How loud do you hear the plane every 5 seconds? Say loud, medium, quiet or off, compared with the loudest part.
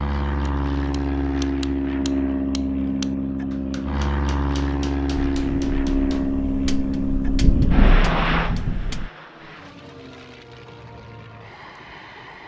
loud, loud, quiet.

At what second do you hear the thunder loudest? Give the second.
8 s.